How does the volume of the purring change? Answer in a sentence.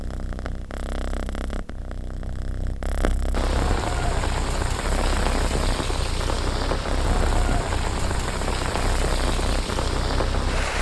The loudness of the purring stays about the same.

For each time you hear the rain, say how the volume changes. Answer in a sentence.
The rain can be heard from 3.3 to 10.7 s, at a steady volume.